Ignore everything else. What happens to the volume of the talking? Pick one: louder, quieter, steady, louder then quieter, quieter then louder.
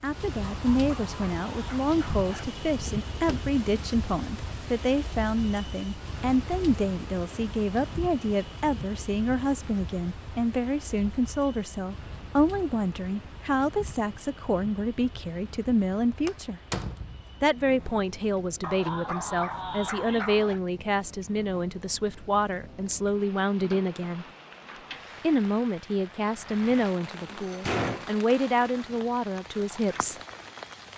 steady.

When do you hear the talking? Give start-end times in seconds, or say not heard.
0.0-16.6, 17.4-24.2, 25.2-30.1.